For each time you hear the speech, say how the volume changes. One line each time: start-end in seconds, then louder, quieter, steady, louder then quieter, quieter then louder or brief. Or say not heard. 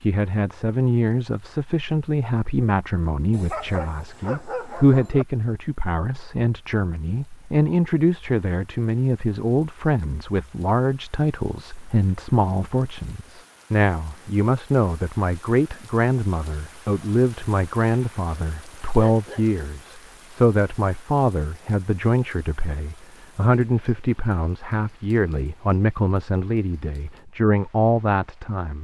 0.0-28.7 steady.